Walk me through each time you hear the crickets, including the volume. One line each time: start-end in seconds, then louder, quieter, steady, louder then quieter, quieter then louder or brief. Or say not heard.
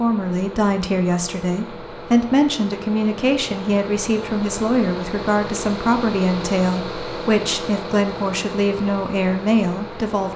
not heard.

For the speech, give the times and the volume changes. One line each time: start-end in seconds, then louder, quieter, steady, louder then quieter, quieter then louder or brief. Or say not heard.
0.0-10.3 steady.